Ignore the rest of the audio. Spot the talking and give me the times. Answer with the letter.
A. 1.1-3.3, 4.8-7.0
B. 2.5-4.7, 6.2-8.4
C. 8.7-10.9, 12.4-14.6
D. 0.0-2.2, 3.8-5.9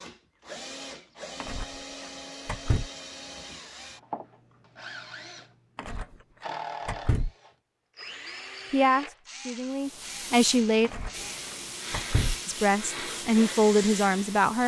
C.